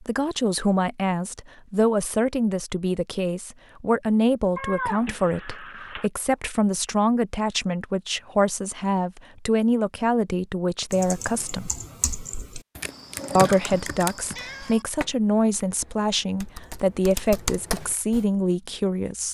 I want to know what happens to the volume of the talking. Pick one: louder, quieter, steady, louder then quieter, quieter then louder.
steady.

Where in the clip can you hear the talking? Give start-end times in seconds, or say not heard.
0.0-11.7, 13.3-19.3.